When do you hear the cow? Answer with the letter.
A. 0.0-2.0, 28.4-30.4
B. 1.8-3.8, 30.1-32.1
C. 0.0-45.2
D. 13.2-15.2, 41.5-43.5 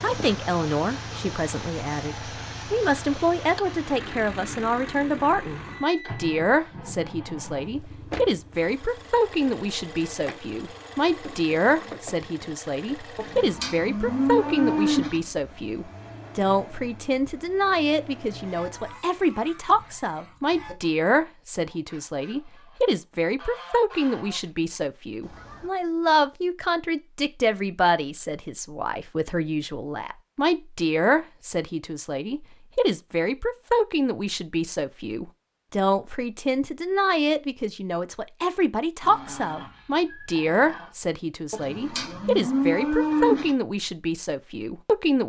D.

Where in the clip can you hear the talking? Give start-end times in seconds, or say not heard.
0.0-45.2.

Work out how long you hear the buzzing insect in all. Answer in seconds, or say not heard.
not heard.